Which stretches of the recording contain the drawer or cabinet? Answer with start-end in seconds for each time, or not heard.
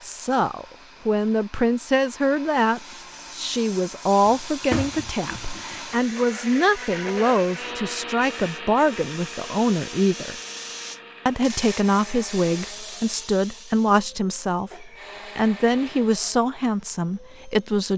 4.2-5.8.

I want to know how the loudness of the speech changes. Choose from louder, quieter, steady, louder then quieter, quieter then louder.
steady.